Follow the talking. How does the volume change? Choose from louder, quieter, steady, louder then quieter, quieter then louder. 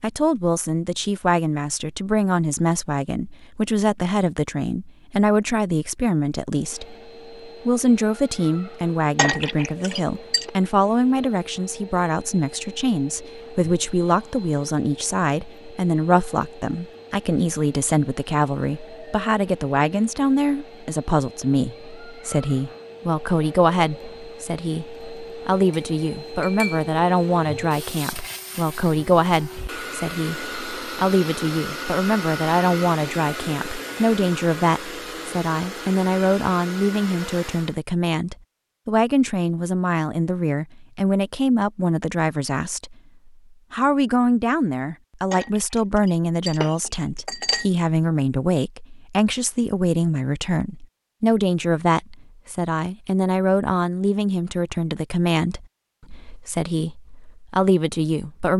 steady.